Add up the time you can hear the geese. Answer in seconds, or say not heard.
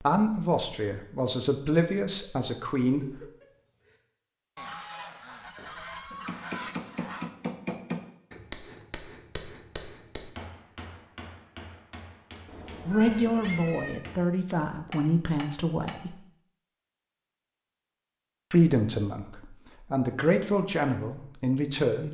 3 s.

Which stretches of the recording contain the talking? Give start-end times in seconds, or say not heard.
0.0-3.2, 12.8-16.1, 18.5-22.0.